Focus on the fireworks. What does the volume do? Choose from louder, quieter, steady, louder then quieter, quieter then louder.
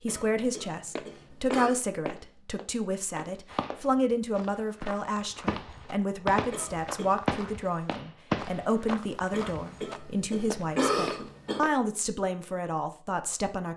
louder then quieter.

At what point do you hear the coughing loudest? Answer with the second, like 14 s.
11 s.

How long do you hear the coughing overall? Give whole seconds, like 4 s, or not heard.
5 s.